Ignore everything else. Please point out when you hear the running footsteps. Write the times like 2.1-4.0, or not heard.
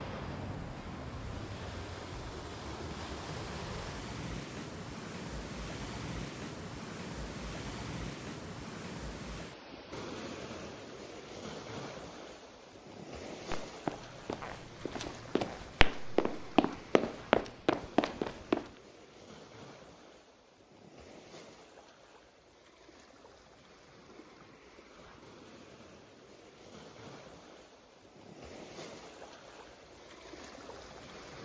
13.5-18.7.